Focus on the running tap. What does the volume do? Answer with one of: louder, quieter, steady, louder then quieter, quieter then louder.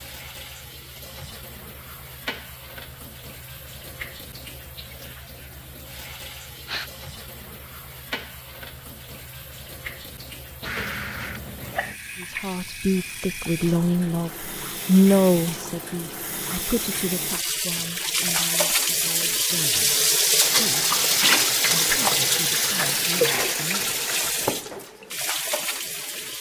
louder.